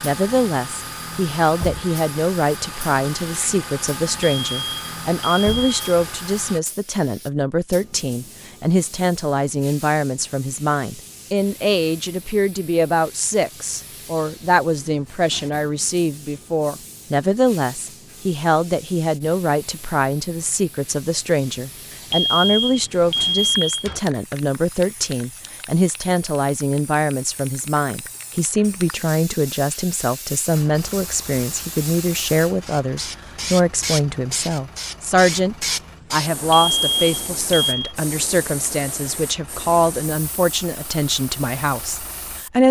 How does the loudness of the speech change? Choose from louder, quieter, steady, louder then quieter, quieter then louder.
steady.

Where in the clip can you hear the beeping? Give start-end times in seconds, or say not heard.
4.2-5.9, 22.1-24.0, 36.5-38.0.